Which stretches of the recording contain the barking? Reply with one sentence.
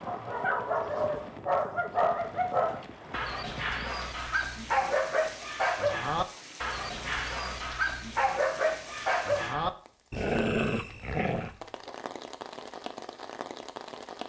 You can hear the barking from 0.0 to 11.9 s.